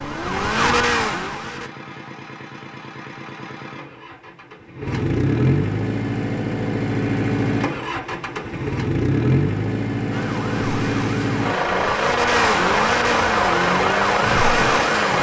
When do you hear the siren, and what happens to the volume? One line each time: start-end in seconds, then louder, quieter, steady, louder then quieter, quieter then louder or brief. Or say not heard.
0.0-1.7 brief
10.1-15.1 louder.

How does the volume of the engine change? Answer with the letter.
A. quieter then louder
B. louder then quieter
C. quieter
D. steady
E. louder
E.